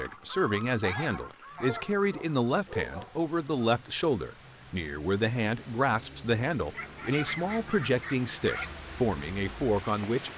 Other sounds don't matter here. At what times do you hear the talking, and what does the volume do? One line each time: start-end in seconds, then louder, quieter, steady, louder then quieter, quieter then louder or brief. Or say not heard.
0.0-10.3 steady.